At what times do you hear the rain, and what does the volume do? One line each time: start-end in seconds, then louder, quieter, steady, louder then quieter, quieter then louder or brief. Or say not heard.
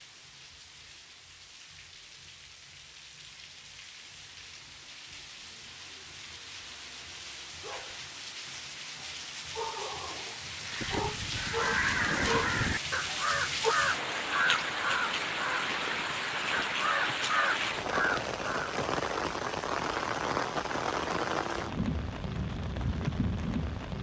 0.0-23.9 louder.